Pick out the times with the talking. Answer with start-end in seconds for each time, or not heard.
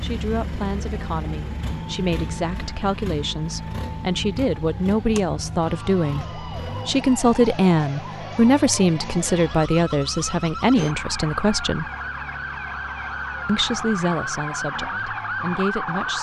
0.0-11.9, 13.4-16.1.